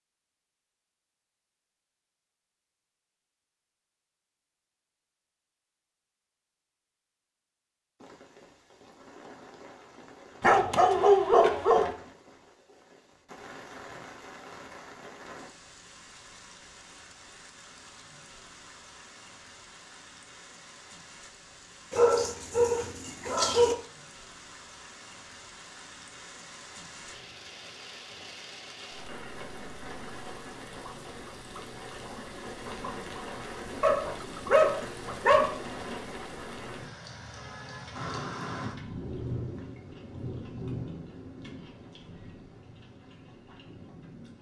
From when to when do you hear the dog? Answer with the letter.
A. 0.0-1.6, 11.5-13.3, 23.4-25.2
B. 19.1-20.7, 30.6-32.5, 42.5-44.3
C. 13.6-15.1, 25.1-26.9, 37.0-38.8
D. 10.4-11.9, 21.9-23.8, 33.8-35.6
D.